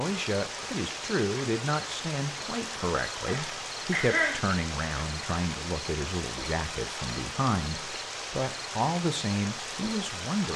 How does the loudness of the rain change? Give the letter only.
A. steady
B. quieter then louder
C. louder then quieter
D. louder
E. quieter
A.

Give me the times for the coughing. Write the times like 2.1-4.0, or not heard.
3.2-4.4.